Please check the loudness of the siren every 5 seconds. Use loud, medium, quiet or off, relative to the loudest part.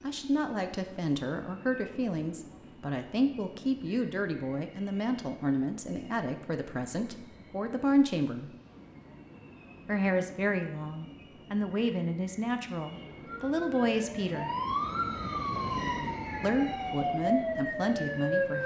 off, off, loud, loud.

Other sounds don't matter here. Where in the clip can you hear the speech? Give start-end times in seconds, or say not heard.
0.0-8.5, 9.8-14.5, 16.4-18.6.